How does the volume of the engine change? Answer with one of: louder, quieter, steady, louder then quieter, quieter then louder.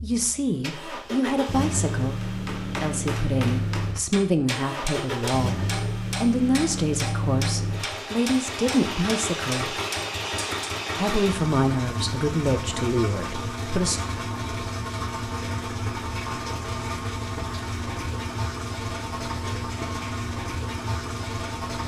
steady.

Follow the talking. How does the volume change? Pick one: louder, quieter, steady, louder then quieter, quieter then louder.
steady.